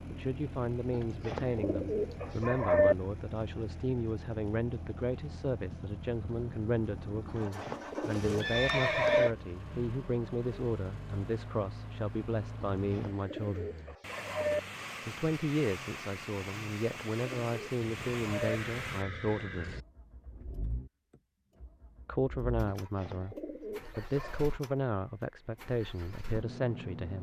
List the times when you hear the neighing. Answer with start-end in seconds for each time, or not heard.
8.4-9.3, 17.8-19.9.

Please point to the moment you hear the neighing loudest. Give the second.
9 s.